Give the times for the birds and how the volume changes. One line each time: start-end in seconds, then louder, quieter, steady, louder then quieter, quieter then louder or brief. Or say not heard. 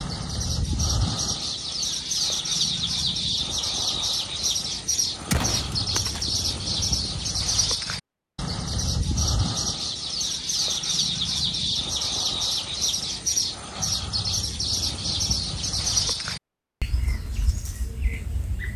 0.0-18.7 steady.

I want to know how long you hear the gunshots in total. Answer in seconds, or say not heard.
2 s.